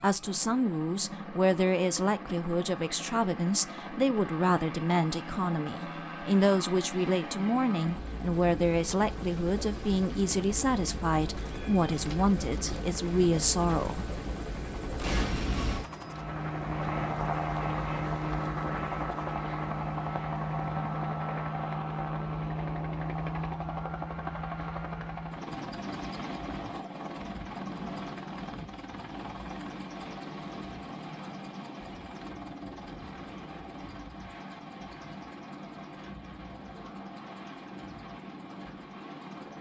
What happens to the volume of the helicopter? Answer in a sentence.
The loudness of the helicopter goes up, then down.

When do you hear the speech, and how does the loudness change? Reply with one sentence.
You can hear the speech from 0.0 to 14.1 s, at a steady volume.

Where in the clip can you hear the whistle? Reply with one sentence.
You can't hear the whistle here.